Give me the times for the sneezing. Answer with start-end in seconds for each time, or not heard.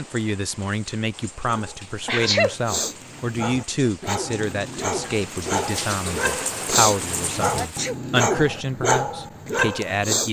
2.0-2.5, 7.5-8.0.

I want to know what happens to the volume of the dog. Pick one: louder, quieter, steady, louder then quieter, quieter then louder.
louder.